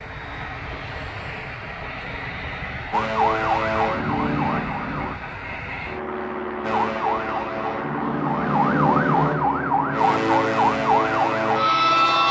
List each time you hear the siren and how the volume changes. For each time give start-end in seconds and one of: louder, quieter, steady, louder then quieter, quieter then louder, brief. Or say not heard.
2.9-5.2 brief
6.6-12.2 louder.